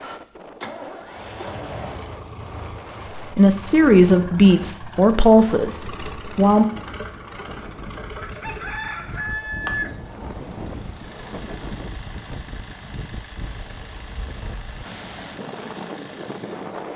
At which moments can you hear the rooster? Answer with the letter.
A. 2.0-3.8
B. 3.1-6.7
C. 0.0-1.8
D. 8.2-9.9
D.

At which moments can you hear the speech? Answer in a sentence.
You can hear the speech from 3.1 to 6.7 s.